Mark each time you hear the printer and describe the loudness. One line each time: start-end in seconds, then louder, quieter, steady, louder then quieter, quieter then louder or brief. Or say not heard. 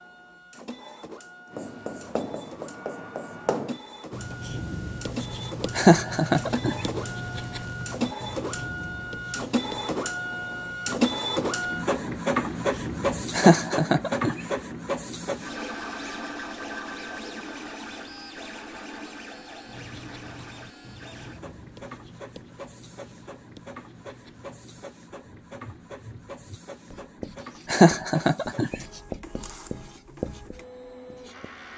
0.0-31.7 louder then quieter.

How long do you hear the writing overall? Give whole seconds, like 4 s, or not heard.
24 s.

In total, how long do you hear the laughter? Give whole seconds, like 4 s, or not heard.
3 s.